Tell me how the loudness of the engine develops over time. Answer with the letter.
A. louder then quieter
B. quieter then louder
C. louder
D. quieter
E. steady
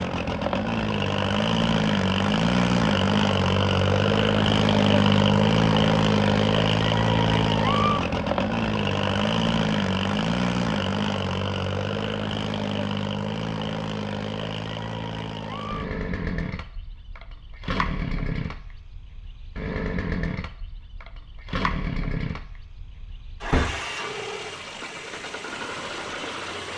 D.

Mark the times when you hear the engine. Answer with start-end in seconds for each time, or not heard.
0.0-26.7.